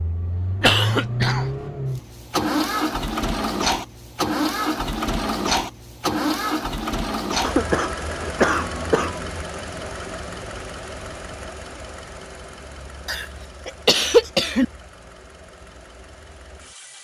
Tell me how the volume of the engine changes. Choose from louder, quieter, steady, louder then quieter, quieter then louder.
quieter.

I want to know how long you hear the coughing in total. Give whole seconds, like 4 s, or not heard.
4 s.